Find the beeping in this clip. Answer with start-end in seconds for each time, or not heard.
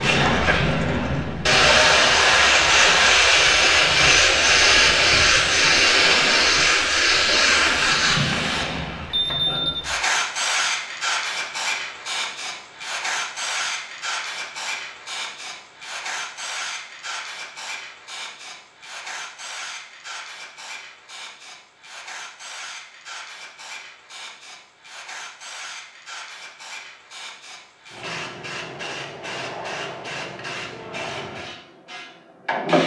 9.1-9.8.